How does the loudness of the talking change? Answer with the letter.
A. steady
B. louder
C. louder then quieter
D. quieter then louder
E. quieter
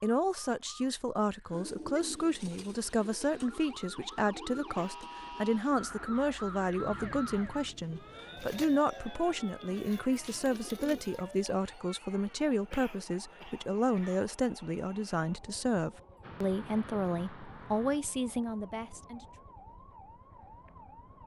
A.